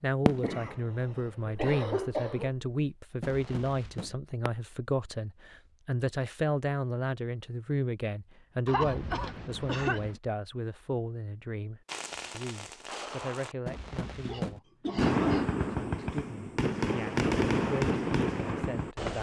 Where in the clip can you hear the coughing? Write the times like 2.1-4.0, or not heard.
0.2-2.5, 8.7-10.2, 14.0-15.5.